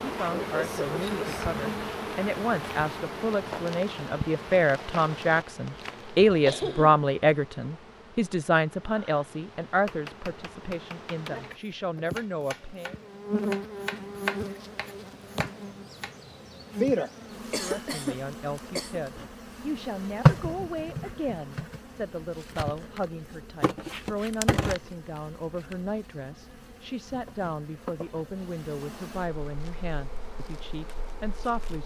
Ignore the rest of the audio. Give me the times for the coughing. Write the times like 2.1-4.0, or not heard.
6.0-7.0, 17.4-19.0.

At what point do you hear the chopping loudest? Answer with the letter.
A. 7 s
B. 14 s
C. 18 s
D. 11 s
B.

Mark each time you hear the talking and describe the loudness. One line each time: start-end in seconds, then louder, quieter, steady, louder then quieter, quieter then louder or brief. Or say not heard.
0.0-13.0 louder then quieter
17.6-31.8 steady.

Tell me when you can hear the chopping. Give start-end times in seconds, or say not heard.
9.7-16.1.